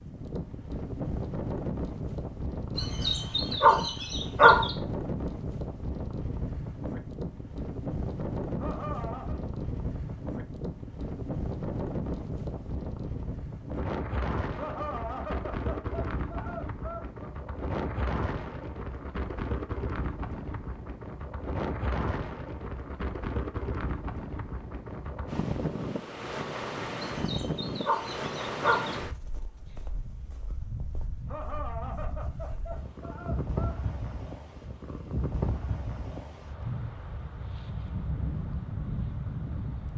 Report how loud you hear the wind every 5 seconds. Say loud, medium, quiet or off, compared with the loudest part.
loud, loud, loud, loud, loud, loud, medium, loud.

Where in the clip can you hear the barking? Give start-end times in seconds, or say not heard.
2.8-4.8, 27.2-28.9.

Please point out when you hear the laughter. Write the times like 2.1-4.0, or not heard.
8.6-9.4, 14.6-17.1, 31.2-33.8.